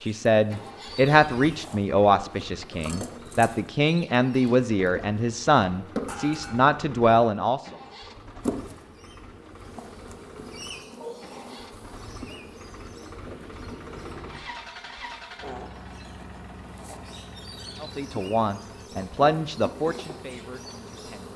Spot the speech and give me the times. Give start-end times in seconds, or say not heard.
0.0-7.8, 17.8-21.3.